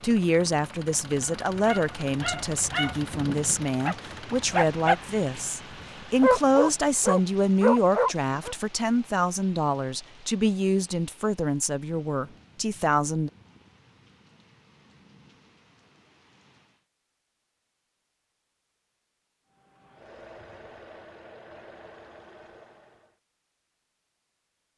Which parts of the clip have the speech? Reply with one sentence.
You can hear the speech from 0.0 to 13.3 s.